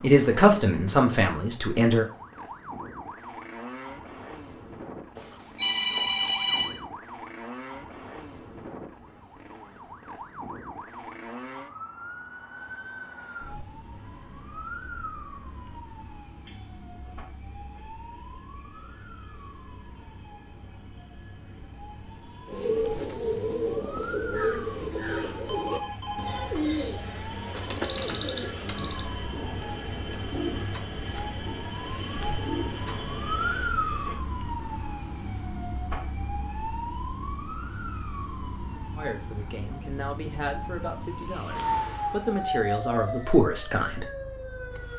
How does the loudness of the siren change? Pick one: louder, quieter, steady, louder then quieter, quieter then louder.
louder.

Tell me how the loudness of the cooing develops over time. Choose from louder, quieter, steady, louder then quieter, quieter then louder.
quieter.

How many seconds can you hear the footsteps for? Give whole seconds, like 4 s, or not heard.
not heard.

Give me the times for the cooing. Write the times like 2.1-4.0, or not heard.
22.4-33.1.